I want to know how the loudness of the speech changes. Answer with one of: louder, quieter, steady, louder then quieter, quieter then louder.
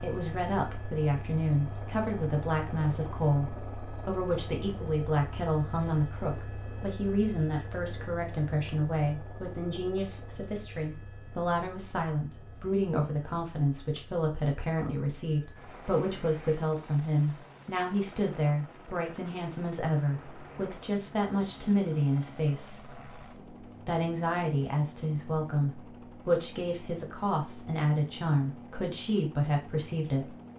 steady.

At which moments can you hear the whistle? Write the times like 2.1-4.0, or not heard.
not heard.